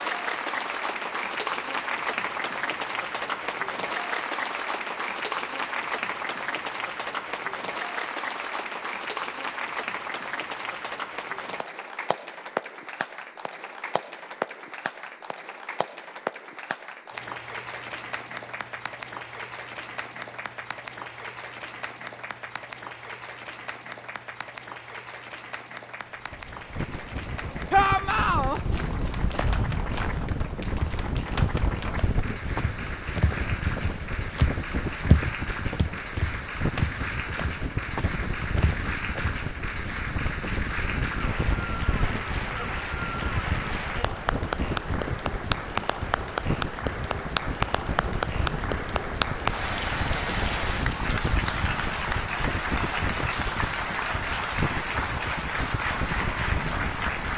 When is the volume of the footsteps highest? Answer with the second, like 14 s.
35 s.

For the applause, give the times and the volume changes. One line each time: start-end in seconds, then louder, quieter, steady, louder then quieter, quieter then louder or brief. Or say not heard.
0.0-57.3 quieter then louder.